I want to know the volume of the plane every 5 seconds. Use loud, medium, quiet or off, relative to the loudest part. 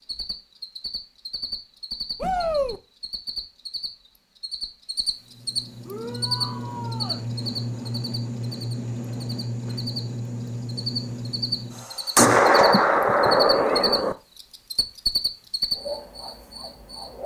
off, loud, loud, off.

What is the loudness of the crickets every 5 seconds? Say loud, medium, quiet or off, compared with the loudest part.
medium, loud, loud, loud.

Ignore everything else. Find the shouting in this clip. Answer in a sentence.
You can hear the shouting from 2.2 to 2.8 s, from 5.8 to 7.2 s and from 13.5 to 14.2 s.